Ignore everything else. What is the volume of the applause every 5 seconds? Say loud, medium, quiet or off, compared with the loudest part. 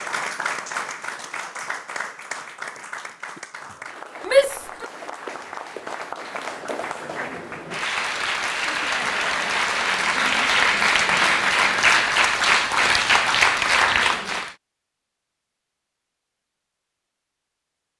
quiet, medium, loud, off.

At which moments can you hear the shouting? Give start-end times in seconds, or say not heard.
4.2-4.8.